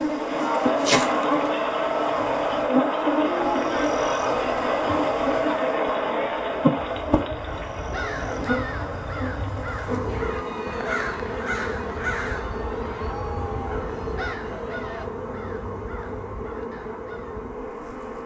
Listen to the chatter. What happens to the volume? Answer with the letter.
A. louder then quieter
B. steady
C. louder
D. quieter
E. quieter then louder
D.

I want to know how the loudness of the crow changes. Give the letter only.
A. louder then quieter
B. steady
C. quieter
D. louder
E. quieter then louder
C.